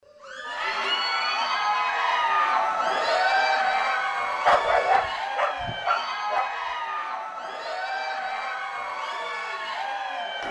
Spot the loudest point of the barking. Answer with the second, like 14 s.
5 s.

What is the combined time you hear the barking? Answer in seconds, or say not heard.
2 s.